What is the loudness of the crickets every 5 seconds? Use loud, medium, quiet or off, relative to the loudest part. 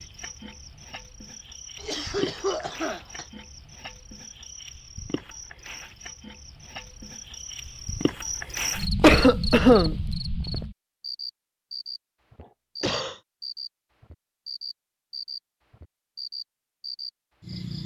medium, loud, loud, loud.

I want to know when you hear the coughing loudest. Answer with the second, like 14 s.
9 s.